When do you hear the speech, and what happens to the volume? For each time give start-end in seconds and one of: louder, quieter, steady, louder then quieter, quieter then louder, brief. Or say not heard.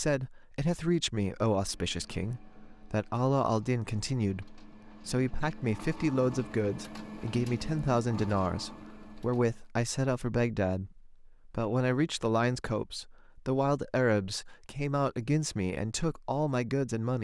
0.0-17.2 steady.